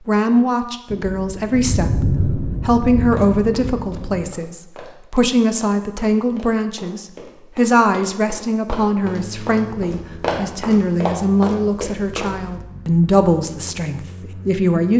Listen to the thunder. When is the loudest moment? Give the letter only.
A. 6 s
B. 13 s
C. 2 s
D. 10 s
C.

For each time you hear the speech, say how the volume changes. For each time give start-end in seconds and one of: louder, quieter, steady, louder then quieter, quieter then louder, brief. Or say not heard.
0.0-14.9 steady.